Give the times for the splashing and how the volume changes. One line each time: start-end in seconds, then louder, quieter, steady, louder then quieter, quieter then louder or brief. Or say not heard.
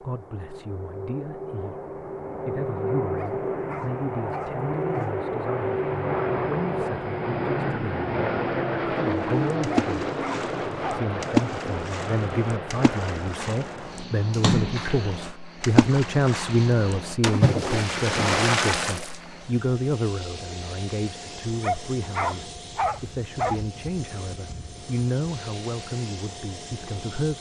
9.2-19.2 quieter then louder.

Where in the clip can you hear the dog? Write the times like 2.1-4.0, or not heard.
3.1-5.2, 9.7-11.1, 21.6-23.6.